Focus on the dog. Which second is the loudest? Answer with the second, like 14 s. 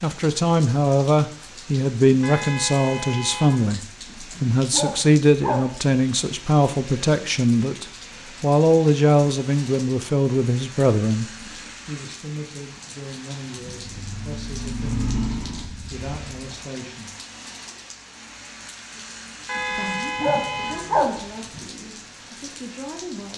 21 s.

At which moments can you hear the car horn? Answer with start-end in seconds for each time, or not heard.
2.2-3.7, 19.4-20.9.